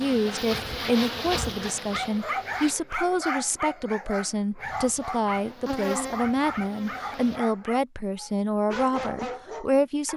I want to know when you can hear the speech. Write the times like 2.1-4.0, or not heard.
0.0-10.1.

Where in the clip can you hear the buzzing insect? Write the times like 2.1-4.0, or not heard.
0.0-2.8, 4.6-7.4.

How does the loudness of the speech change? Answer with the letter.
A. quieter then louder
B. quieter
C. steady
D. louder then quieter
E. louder
C.